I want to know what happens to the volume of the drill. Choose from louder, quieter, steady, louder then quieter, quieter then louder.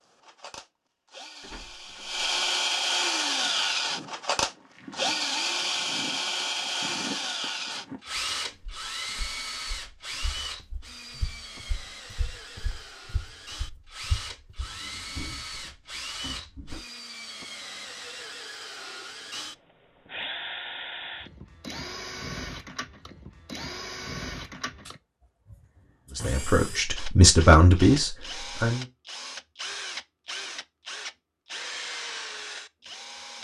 quieter.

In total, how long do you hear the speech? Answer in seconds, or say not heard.
3 s.